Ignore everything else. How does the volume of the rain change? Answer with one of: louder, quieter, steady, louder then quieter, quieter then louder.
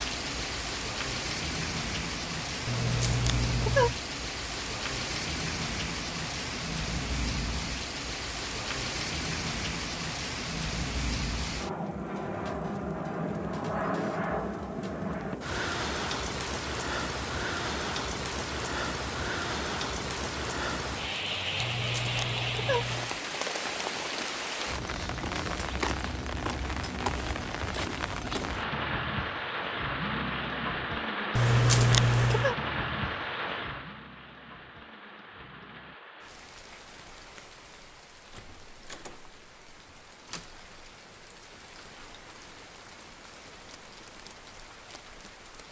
quieter.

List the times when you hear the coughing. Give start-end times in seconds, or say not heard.
not heard.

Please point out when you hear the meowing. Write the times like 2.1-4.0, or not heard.
2.6-4.0, 21.6-23.1, 31.4-32.5.